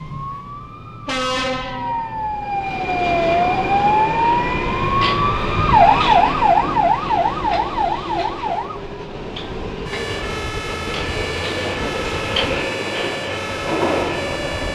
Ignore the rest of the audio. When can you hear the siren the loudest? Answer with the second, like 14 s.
6 s.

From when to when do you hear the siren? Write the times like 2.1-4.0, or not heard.
0.0-14.7.